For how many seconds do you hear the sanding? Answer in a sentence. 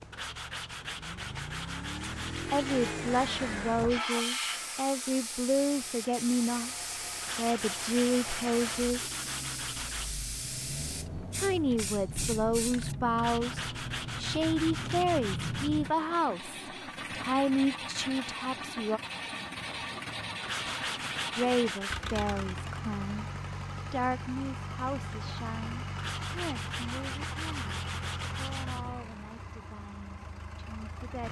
You can hear the sanding for 13 seconds altogether.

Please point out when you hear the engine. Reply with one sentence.
The engine can be heard from 0.0 to 31.2 s.